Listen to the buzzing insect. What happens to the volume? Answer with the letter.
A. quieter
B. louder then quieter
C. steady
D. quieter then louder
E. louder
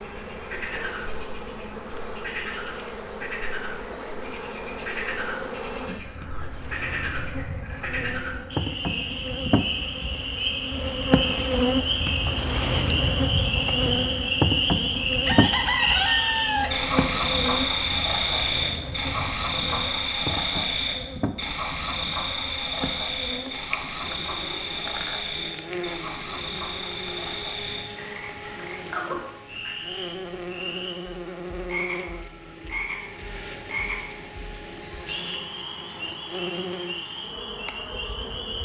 B.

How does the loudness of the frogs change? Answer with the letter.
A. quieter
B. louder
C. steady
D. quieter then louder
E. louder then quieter
E.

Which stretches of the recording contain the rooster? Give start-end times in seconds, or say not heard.
15.2-16.8.